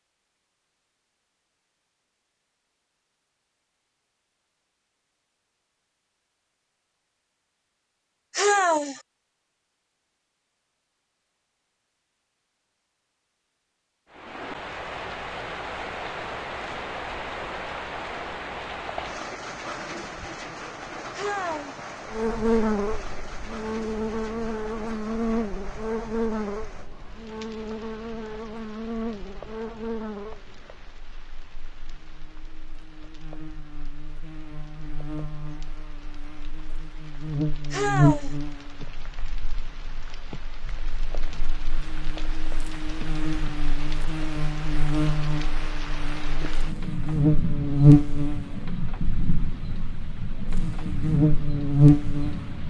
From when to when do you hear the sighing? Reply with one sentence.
You can hear the sighing from 8.3 to 9.0 s, from 21.1 to 21.8 s and from 37.7 to 38.4 s.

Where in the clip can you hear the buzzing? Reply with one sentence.
The buzzing can be heard from 22.1 to 52.6 s.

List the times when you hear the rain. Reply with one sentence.
You can hear the rain from 14.1 to 52.6 s.